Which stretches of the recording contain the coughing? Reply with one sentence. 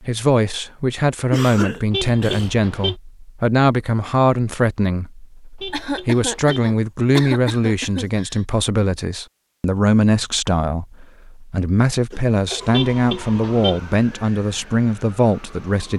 The coughing can be heard from 1.3 to 2.5 s, from 5.7 to 8.4 s and from 12.1 to 12.7 s.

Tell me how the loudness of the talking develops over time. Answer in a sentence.
The volume of the talking stays about the same.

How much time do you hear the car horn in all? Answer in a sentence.
You can hear the car horn for 3 seconds altogether.